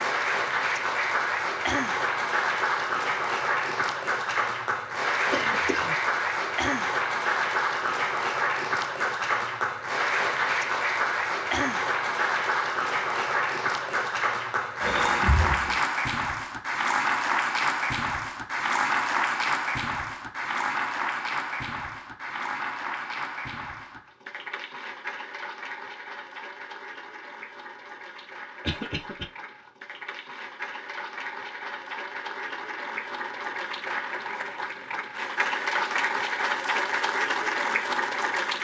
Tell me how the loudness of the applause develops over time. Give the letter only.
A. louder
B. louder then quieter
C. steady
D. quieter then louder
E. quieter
D.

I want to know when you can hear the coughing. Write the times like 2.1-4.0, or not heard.
5.3-6.0, 14.8-15.8, 28.6-29.2.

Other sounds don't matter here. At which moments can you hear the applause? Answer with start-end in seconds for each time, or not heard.
0.0-38.5.